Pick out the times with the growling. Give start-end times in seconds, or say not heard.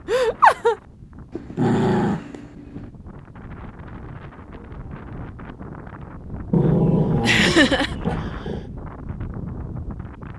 1.3-2.9, 6.5-8.7.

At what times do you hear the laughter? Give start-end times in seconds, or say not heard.
0.1-0.8, 7.2-7.9.